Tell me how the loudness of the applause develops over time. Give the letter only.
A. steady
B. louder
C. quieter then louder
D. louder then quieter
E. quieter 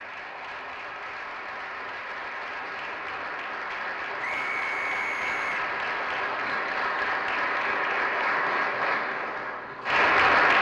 B.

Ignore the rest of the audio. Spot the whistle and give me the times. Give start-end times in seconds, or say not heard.
4.2-5.7.